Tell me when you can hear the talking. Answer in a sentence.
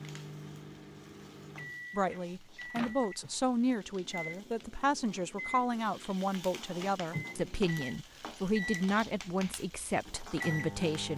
The talking can be heard from 1.9 to 11.1 s.